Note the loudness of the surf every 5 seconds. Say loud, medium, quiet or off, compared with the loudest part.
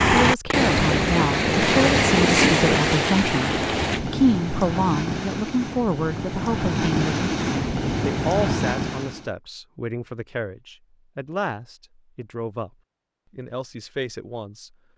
loud, medium, off.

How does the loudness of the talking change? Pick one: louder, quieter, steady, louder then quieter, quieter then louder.
quieter.